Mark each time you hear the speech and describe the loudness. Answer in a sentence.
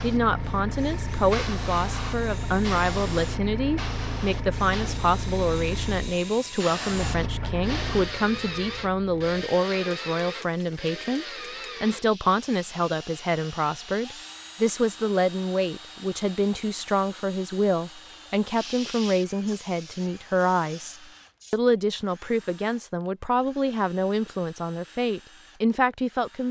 The speech can be heard from 0.0 to 26.4 s, at a steady volume.